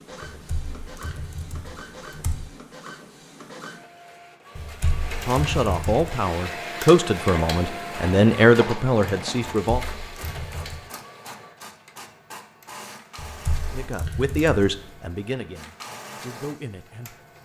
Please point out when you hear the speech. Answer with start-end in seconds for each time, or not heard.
5.2-9.8, 13.7-17.2.